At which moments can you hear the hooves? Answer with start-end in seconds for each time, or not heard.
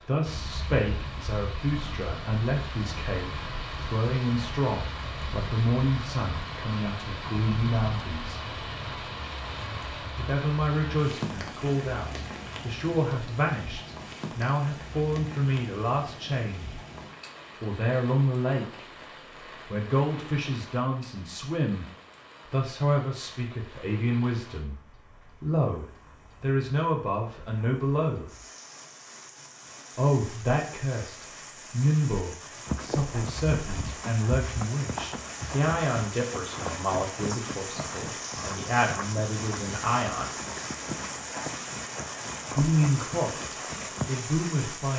32.6-44.2.